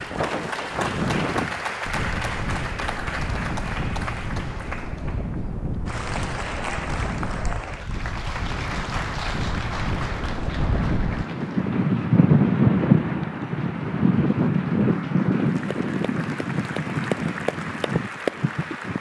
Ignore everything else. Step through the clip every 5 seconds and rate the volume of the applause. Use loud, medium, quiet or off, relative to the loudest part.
loud, loud, medium, loud.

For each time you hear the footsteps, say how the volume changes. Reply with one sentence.
The footsteps can't be heard in this clip.